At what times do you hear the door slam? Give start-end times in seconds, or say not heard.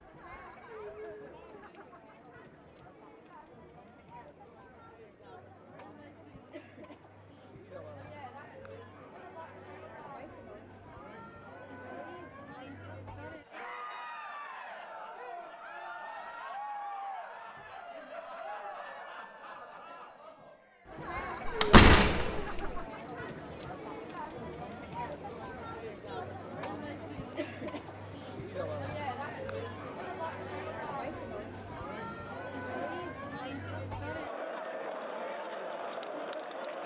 21.4-22.8.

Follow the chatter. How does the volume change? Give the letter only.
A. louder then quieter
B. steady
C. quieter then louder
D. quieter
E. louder
E.